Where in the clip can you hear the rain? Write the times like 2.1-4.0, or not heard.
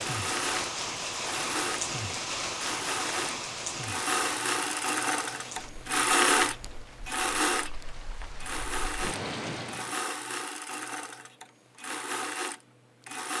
0.0-10.0.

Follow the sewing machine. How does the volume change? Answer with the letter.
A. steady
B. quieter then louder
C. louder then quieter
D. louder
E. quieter
C.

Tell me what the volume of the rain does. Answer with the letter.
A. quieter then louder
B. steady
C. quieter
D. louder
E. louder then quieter
A.